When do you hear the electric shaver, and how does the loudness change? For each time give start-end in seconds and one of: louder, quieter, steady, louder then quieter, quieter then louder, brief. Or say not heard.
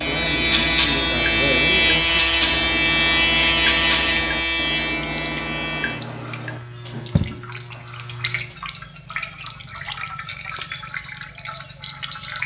0.0-8.6 quieter.